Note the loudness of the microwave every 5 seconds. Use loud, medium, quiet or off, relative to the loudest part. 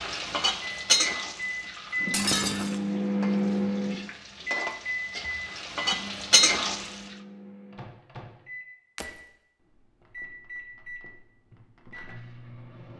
loud, quiet, quiet.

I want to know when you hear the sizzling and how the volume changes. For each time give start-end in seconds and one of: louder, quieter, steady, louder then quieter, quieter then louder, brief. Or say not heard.
0.0-7.0 quieter then louder.